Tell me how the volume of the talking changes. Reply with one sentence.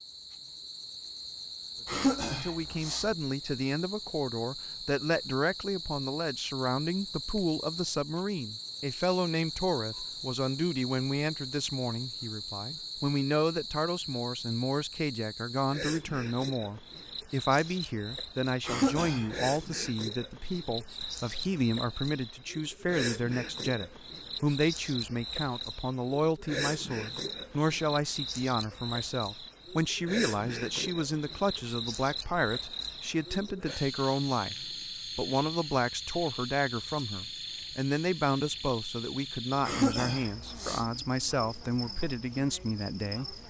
The loudness of the talking stays about the same.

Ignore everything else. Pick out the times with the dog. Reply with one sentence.
You can't hear the dog here.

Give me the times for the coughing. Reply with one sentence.
The coughing can be heard from 1.9 to 3.1 s, from 18.6 to 19.5 s and from 39.6 to 40.9 s.